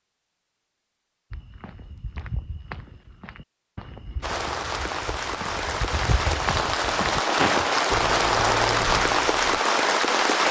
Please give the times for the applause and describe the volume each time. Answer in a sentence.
You can hear the applause from 4.2 to 10.4 s, getting louder.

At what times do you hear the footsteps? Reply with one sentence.
The footsteps can be heard from 1.3 to 9.6 s.